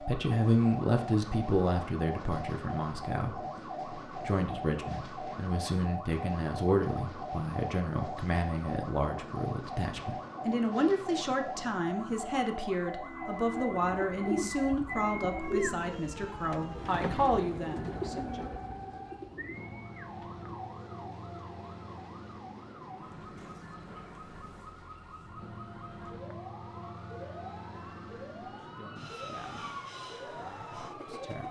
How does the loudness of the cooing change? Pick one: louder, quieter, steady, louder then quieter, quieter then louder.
quieter.